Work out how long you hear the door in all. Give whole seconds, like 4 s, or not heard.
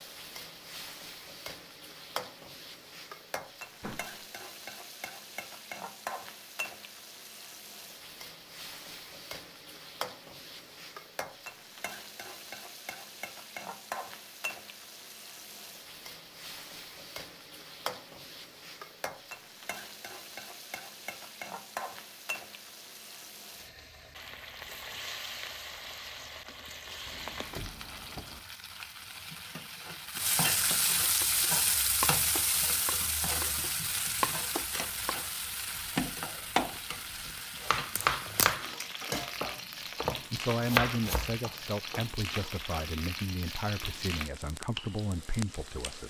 2 s.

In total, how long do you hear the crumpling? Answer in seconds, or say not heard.
2 s.